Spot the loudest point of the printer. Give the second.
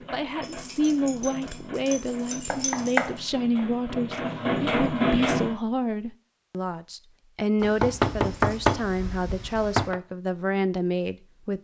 5 s.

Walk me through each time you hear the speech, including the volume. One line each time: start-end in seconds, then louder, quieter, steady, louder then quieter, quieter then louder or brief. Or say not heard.
0.1-11.6 steady.